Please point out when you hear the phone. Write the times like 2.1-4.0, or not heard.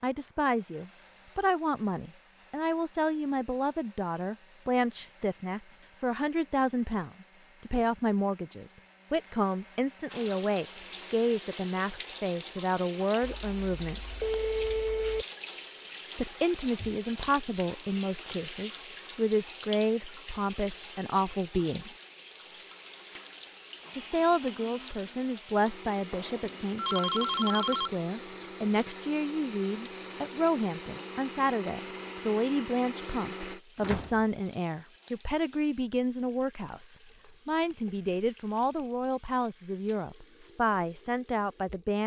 13.2-15.2, 26.1-27.9.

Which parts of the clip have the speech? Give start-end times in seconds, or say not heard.
0.0-14.0, 16.1-21.9, 23.9-42.0.